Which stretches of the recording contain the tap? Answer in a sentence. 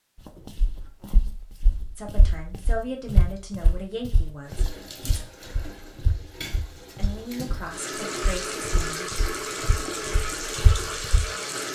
You can hear the tap from 4.5 to 11.7 s.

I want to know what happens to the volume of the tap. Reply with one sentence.
The volume of the tap goes up.